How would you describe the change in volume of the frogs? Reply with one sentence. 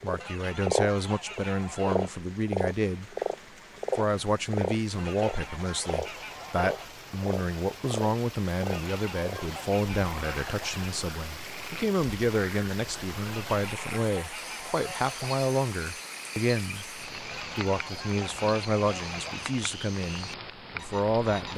The volume of the frogs goes down.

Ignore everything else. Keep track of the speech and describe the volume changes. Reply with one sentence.
The volume of the speech stays about the same.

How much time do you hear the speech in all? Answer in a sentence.
The speech can be heard for 21 seconds in total.